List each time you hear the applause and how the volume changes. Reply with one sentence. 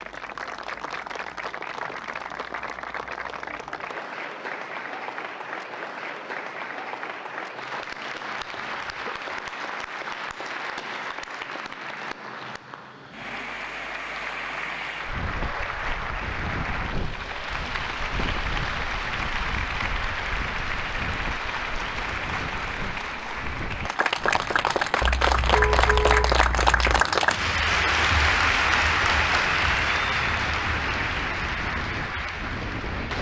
The applause can be heard from 0.0 to 33.1 s, getting louder.